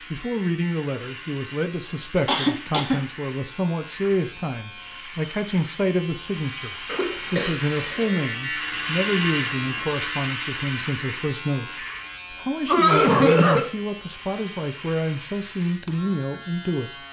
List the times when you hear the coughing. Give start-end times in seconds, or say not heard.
2.2-3.0, 6.8-8.2, 12.7-13.7.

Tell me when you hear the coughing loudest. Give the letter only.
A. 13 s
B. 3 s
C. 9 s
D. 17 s
A.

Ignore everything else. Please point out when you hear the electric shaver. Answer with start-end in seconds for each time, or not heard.
0.0-17.0.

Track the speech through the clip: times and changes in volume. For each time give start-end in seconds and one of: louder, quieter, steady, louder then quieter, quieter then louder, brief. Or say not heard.
0.1-17.0 steady.